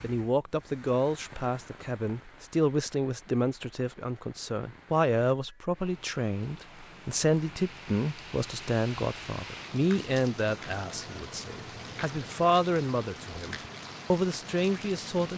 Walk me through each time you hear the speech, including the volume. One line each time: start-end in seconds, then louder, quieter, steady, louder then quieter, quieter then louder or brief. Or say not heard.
0.0-15.3 steady.